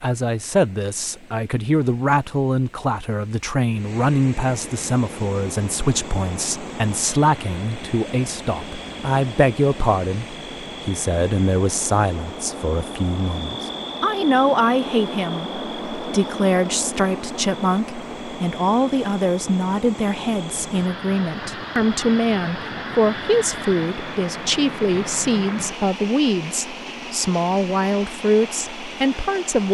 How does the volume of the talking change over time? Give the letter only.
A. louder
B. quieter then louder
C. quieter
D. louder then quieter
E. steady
E.